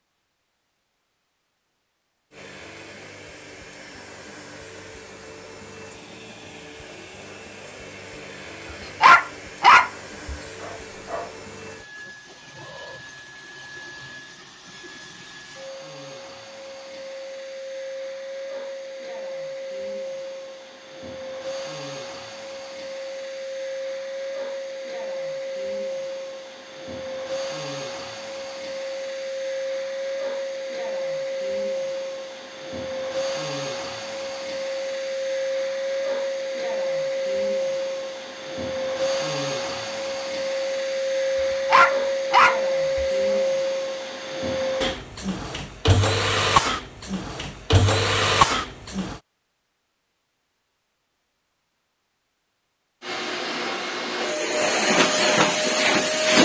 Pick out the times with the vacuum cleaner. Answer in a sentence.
You can hear the vacuum cleaner from 2.3 to 49.2 s and from 53.0 to 56.4 s.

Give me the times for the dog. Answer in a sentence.
You can hear the dog from 9.0 to 11.2 s and from 41.7 to 43.0 s.